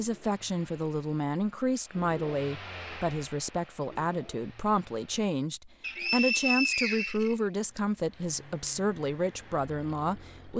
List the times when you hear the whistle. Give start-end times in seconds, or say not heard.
5.8-7.8.